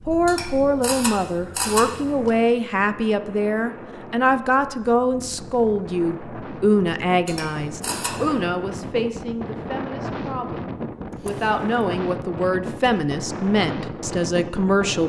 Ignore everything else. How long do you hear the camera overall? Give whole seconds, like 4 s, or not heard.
4 s.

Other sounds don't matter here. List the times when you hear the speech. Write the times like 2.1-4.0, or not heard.
0.1-15.0.